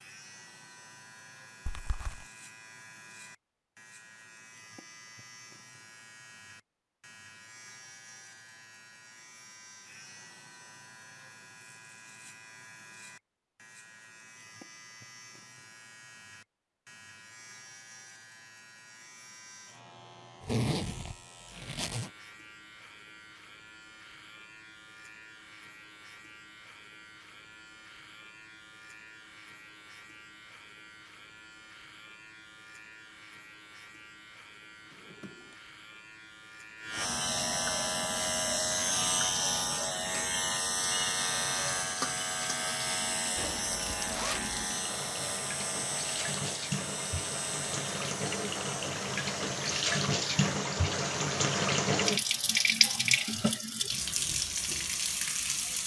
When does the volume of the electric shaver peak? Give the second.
39 s.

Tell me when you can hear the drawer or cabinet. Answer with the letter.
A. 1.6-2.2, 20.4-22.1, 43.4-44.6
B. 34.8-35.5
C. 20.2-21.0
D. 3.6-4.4
B.